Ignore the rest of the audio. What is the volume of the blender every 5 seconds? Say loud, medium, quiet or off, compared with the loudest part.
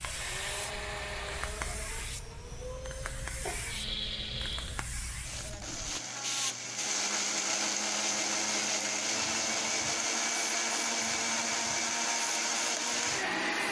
medium, loud, loud.